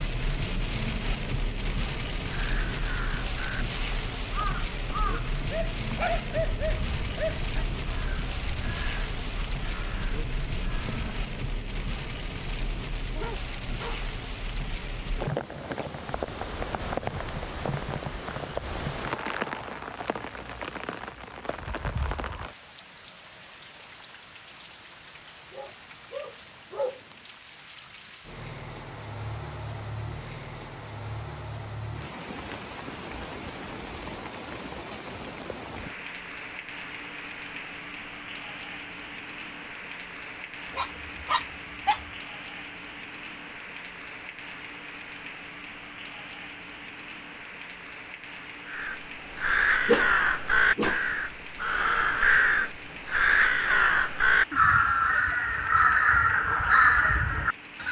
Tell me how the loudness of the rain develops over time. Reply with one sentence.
The loudness of the rain goes down.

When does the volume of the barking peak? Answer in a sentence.
The volume of the barking peaks at 50 seconds.